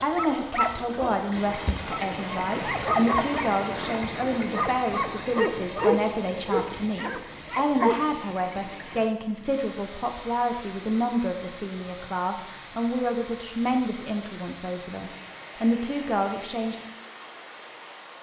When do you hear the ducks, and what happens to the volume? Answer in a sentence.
You can't hear the ducks here.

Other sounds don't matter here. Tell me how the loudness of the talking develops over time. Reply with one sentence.
The loudness of the talking stays about the same.